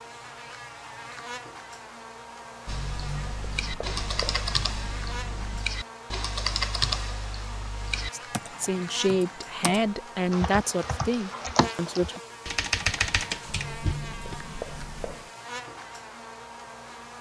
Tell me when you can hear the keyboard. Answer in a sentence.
You can hear the keyboard from 2.6 to 14.3 s.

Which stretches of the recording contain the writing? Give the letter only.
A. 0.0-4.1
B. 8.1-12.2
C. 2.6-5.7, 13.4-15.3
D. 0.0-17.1
C.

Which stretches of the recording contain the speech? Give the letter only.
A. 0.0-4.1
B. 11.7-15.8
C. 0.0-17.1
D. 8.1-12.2
D.